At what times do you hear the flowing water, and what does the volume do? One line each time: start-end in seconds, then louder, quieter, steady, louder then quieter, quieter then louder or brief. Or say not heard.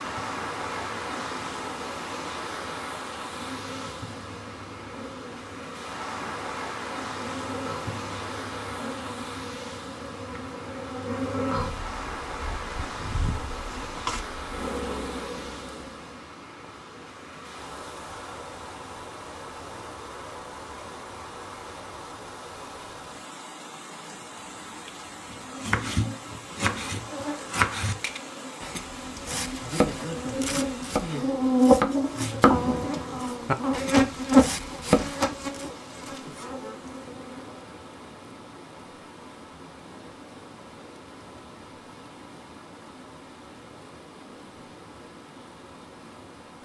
0.0-46.6 quieter.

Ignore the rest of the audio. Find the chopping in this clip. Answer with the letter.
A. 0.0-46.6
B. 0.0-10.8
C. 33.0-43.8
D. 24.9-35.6
D.